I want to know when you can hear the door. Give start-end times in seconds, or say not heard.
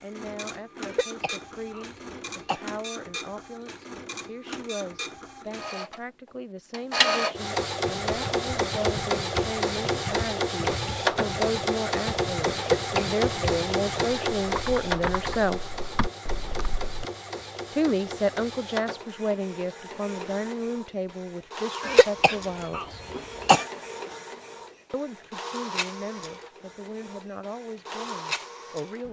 not heard.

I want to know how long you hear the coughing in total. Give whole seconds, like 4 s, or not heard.
4 s.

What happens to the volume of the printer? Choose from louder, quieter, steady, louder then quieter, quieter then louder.
louder then quieter.